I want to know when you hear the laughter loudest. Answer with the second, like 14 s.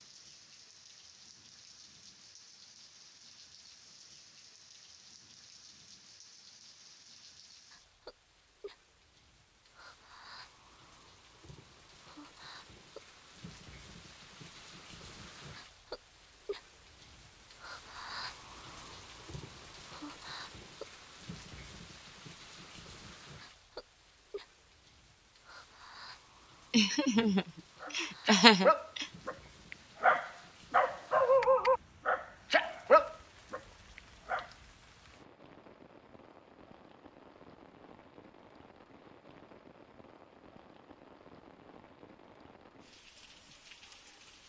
28 s.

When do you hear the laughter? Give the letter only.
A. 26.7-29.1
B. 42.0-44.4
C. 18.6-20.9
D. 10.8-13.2
A.